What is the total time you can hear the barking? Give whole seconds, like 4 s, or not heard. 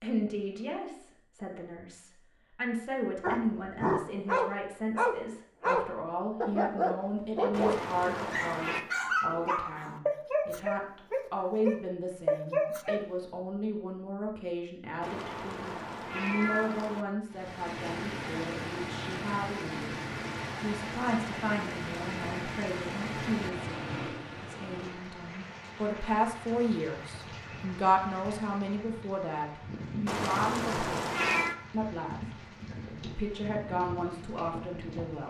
10 s.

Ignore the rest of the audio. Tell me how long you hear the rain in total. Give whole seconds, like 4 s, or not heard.
18 s.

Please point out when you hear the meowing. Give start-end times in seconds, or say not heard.
7.5-8.8, 15.0-17.1, 30.1-31.6.